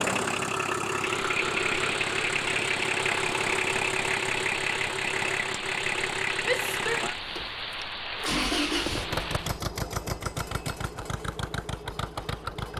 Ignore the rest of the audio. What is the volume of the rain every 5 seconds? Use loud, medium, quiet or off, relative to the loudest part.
loud, loud, off.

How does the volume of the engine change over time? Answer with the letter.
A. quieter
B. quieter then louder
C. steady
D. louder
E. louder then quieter
A.